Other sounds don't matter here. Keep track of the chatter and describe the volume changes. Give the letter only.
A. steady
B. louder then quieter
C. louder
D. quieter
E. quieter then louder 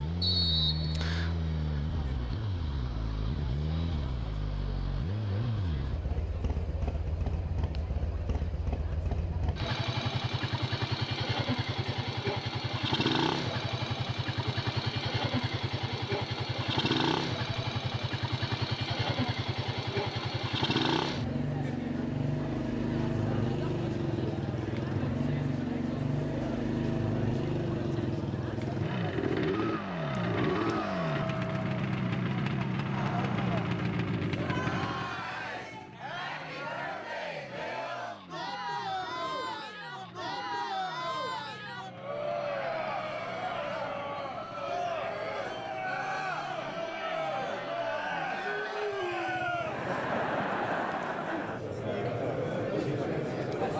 C.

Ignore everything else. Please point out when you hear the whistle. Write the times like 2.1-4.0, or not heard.
0.2-1.4.